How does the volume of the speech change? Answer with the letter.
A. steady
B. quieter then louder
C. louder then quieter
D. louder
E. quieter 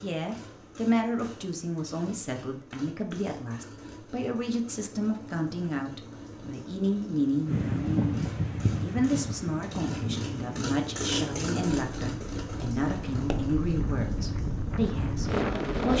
A.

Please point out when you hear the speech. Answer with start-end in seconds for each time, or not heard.
0.0-15.9.